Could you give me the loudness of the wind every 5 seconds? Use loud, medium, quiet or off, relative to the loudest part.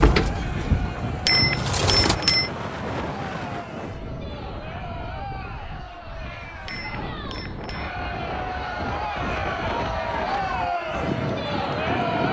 loud, medium, loud.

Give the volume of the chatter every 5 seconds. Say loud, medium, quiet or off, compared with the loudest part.
medium, medium, loud.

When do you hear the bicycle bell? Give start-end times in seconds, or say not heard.
1.2-2.5, 6.7-7.9.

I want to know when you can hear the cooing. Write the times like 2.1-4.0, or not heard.
0.0-2.1.